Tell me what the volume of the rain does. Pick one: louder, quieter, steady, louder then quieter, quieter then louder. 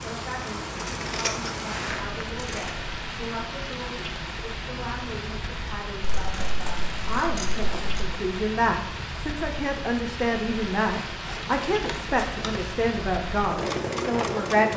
steady.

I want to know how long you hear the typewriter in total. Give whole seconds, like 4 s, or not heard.
not heard.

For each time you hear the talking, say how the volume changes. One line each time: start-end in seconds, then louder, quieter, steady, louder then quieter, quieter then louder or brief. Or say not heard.
0.0-14.7 louder.